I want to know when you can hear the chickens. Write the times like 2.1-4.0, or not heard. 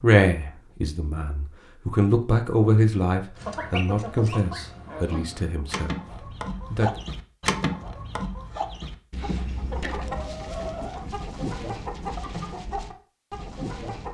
3.4-14.0.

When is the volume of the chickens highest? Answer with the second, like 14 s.
8 s.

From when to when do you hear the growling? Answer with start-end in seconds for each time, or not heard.
not heard.